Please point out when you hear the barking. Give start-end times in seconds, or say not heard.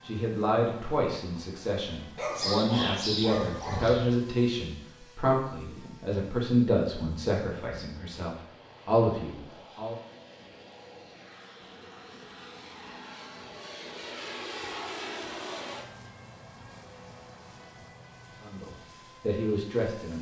2.1-4.1.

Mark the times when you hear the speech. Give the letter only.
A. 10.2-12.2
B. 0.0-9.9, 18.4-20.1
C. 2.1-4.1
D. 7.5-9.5
B.